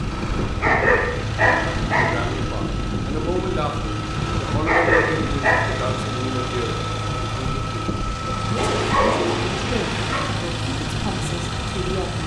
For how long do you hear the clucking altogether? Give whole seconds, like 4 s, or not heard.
not heard.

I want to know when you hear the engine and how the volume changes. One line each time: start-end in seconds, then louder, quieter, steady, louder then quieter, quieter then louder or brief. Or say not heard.
0.0-12.2 steady.